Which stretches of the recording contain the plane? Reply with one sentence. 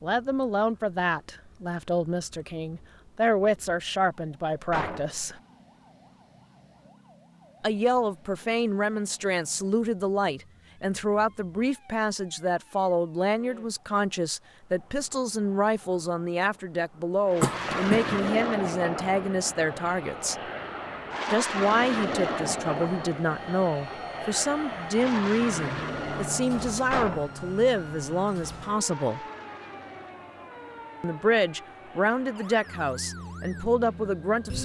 You can hear the plane from 17.2 to 34.5 s.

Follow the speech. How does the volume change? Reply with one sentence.
The volume of the speech stays about the same.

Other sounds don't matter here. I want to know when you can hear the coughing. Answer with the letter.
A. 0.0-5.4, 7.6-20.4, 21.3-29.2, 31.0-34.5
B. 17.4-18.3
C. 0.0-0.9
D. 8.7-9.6
B.